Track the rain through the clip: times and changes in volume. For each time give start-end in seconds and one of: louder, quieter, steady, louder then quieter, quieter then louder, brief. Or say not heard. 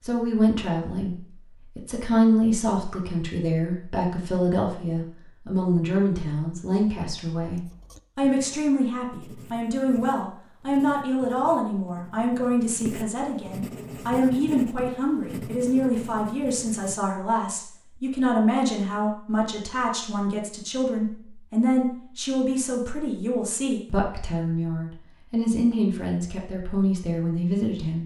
not heard.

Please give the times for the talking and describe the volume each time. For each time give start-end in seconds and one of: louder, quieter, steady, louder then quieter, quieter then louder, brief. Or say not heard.
0.0-28.0 steady.